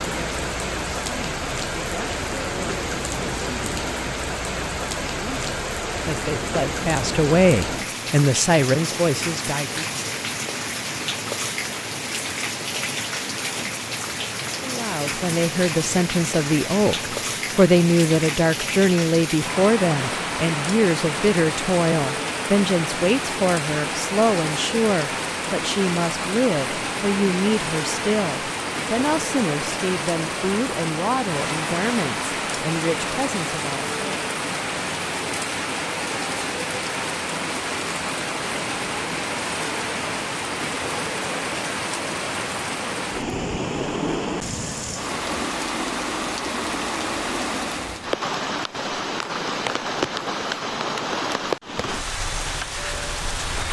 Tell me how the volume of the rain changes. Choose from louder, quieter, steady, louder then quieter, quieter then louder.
steady.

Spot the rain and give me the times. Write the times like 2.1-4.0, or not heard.
0.0-53.6.